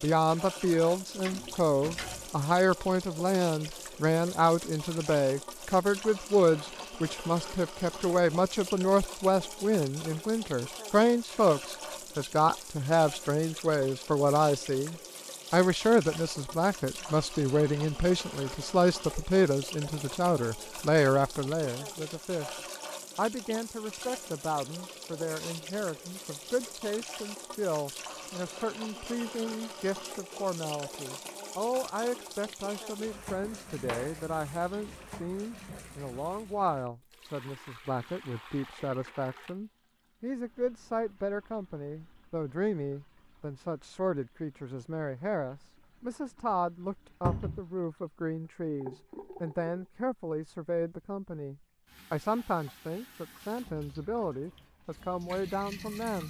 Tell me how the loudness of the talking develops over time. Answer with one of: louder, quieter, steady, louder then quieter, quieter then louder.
quieter.